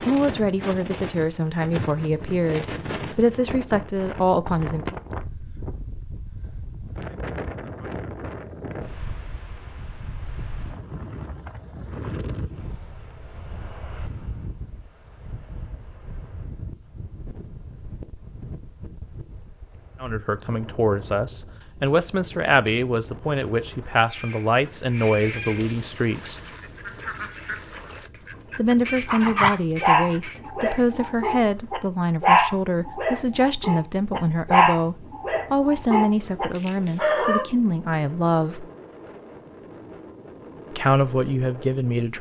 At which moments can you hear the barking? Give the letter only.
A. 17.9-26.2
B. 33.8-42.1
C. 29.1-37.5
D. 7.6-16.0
C.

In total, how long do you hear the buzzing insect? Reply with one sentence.
You can't hear the buzzing insect here.